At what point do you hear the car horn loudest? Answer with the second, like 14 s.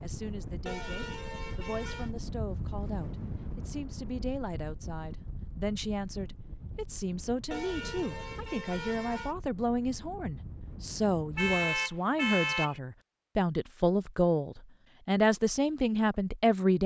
12 s.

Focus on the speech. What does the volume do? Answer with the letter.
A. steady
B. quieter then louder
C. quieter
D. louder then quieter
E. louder
E.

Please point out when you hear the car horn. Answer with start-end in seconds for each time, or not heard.
0.7-2.1, 7.5-9.3, 11.3-12.8.